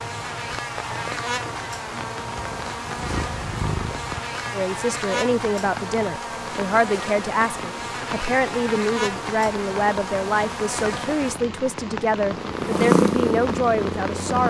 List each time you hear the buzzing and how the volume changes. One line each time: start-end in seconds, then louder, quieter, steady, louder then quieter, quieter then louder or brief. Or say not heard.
0.0-11.3 steady.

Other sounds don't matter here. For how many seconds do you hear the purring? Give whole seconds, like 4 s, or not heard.
4 s.